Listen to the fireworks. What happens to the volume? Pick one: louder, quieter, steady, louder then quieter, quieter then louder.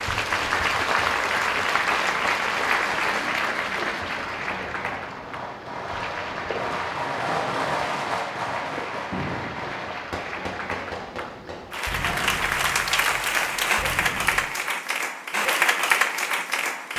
louder then quieter.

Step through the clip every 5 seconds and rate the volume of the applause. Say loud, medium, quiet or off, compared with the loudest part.
loud, quiet, loud, loud.